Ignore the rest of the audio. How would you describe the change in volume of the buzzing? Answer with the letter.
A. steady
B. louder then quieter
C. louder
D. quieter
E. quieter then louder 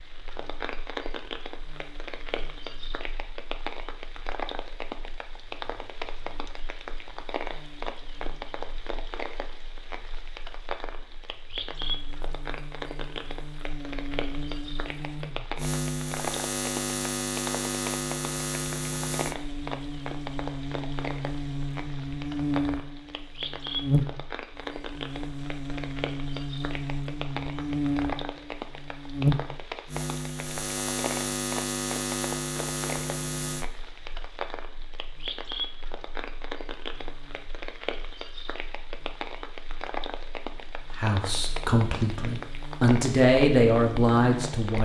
B.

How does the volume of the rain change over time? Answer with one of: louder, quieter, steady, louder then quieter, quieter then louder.
steady.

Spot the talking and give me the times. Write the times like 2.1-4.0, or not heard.
41.0-44.7.